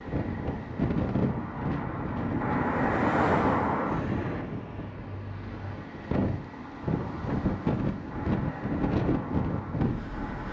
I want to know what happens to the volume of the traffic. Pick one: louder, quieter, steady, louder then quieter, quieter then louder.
louder then quieter.